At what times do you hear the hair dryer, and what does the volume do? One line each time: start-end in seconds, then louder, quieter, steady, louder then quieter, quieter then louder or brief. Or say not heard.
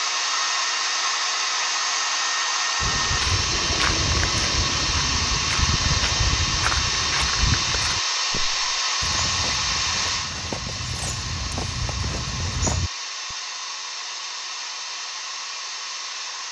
0.0-16.4 quieter.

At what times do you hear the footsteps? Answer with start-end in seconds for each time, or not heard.
2.8-13.3.